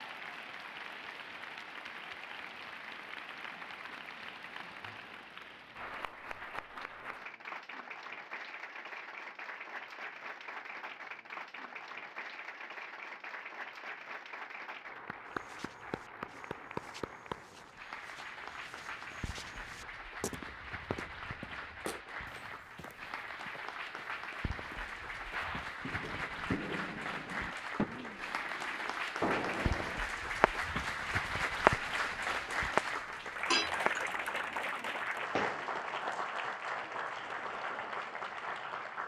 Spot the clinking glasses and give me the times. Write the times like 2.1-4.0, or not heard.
33.5-34.1.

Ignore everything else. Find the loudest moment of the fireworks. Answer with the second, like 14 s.
32 s.